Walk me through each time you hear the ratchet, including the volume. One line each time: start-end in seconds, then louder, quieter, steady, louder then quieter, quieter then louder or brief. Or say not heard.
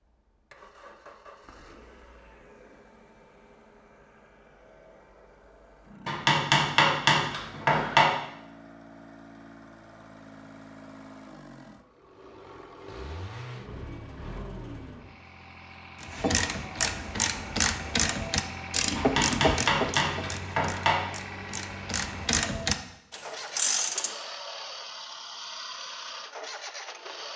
16.0-24.1 quieter then louder.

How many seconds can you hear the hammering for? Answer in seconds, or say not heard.
4 s.